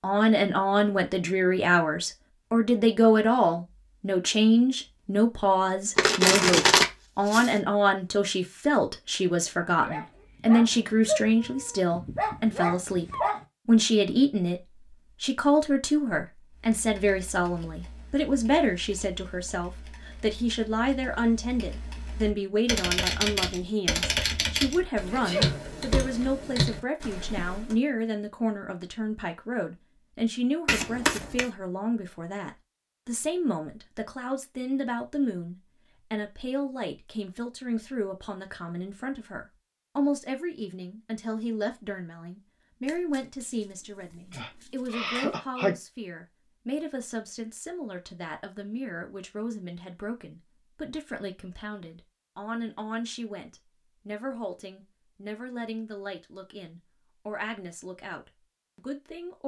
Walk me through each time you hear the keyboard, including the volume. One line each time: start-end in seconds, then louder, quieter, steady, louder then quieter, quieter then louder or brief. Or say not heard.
16.6-27.8 louder.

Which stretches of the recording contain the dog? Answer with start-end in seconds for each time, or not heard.
9.7-13.4.